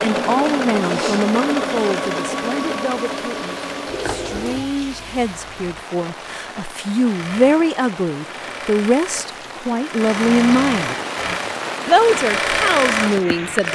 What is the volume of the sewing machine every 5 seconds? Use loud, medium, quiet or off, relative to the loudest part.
loud, medium, loud.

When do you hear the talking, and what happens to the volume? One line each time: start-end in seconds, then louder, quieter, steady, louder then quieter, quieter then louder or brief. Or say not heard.
0.0-10.9 quieter then louder
11.8-13.6 brief.